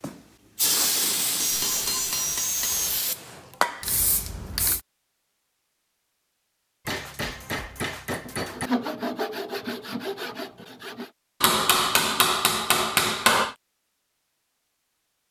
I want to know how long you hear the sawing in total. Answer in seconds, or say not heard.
6 s.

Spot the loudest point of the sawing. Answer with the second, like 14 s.
9 s.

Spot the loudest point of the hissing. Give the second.
1 s.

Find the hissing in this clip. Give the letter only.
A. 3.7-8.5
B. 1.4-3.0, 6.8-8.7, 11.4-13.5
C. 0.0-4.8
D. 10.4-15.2
C.